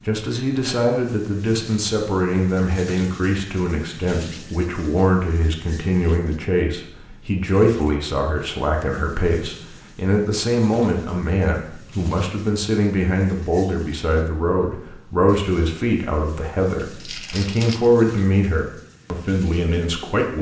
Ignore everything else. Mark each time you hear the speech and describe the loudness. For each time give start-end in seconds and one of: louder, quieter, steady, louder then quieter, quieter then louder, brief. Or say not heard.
0.1-20.3 steady.